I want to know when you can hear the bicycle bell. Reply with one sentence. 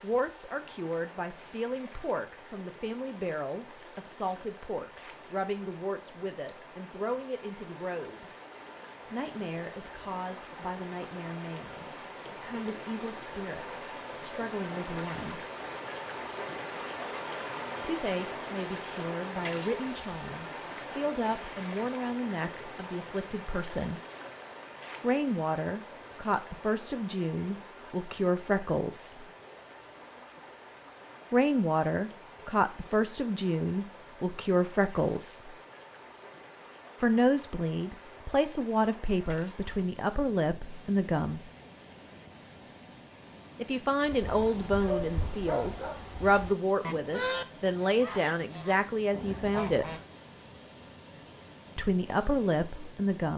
You can't hear the bicycle bell here.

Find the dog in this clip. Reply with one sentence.
You can hear the dog from 44.2 to 46.0 s.